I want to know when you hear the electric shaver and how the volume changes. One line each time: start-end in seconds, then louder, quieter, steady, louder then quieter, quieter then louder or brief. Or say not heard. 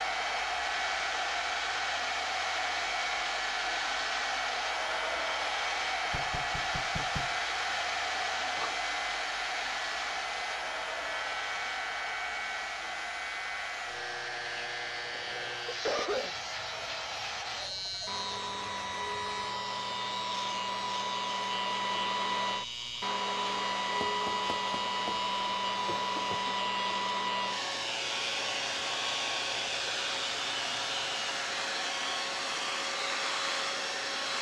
0.0-34.3 steady.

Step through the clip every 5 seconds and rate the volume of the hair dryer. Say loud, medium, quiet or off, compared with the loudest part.
loud, loud, medium, medium, loud, loud, loud.